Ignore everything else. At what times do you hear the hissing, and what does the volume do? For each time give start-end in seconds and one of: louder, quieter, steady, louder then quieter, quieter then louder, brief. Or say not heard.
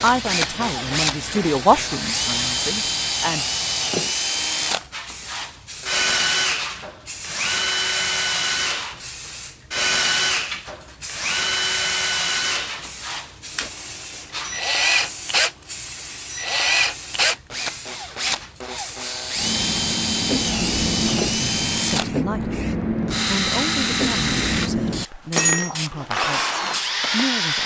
0.0-27.4 louder.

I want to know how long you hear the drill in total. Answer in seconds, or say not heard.
26 s.